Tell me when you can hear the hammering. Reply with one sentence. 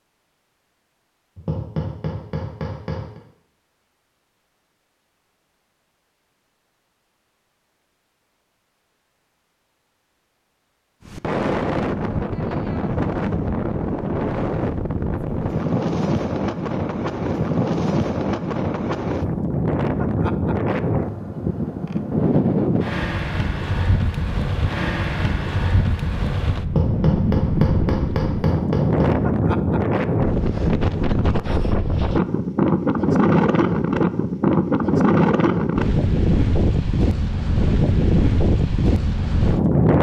The hammering can be heard from 1.4 to 3.2 s and from 26.6 to 29.2 s.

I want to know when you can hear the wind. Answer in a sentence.
You can hear the wind from 11.1 to 39.9 s.